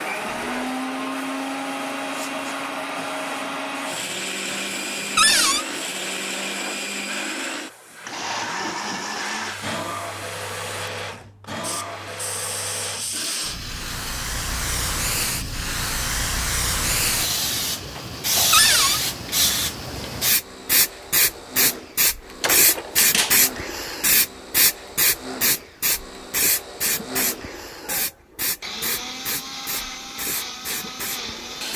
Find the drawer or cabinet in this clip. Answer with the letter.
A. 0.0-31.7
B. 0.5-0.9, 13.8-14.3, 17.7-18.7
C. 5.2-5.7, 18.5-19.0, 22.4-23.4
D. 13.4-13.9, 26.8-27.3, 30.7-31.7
C.